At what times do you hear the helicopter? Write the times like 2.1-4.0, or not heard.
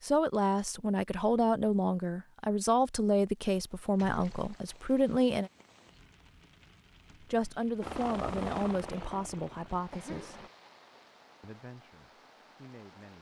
7.8-10.5.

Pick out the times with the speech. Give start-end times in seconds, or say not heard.
0.0-5.5, 7.2-10.4, 11.4-13.1.